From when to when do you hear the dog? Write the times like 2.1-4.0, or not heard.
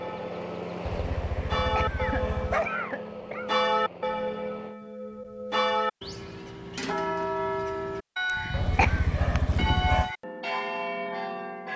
0.8-2.7, 8.5-10.1.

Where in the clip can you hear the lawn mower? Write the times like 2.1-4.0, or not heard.
0.0-4.8.